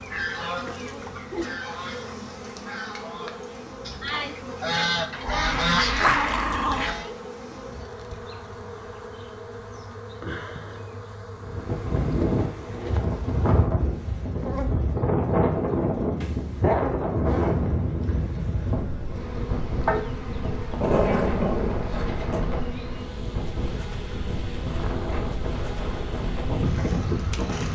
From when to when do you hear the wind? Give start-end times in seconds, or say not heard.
11.3-27.6.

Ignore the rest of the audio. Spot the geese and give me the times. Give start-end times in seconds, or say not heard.
0.0-7.1.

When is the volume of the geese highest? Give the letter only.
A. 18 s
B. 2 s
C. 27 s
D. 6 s
D.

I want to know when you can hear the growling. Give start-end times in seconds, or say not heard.
5.2-7.0, 16.2-16.9, 19.9-22.4.